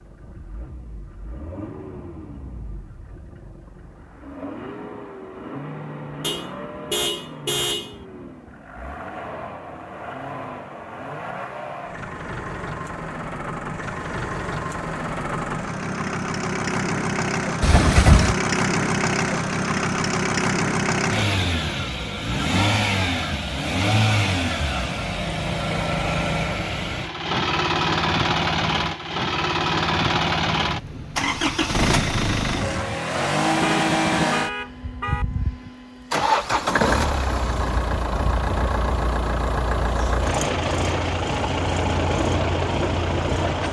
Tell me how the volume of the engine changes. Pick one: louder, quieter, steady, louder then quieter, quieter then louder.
louder.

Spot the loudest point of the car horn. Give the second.
18 s.